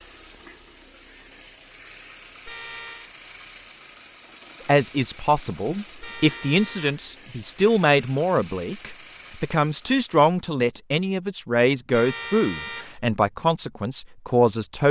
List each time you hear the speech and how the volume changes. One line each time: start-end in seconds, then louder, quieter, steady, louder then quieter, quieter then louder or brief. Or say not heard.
4.7-14.8 steady.